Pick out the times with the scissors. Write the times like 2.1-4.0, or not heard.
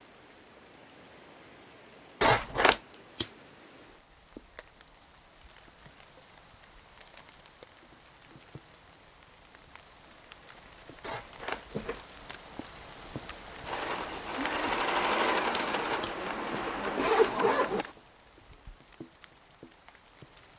2.7-3.3, 15.5-16.6.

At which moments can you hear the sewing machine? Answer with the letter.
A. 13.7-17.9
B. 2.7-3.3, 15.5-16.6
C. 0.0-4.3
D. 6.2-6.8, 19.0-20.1
A.